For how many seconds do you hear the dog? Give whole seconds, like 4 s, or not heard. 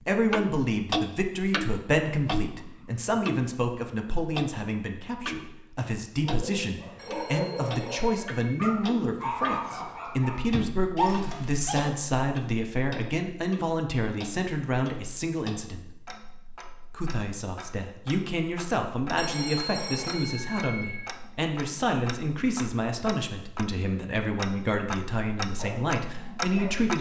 7 s.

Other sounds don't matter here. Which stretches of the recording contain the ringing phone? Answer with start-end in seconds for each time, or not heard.
7.0-8.6, 19.1-21.2.